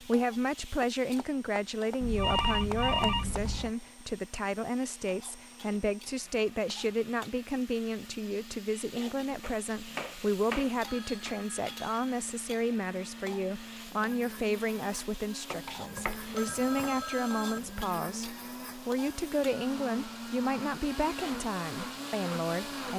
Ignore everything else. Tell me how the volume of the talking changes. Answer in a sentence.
The volume of the talking stays about the same.